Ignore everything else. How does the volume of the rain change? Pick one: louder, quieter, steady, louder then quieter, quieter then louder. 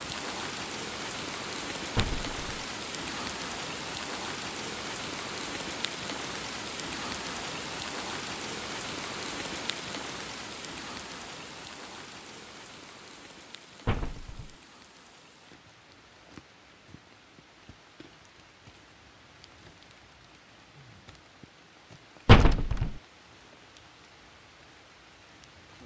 quieter.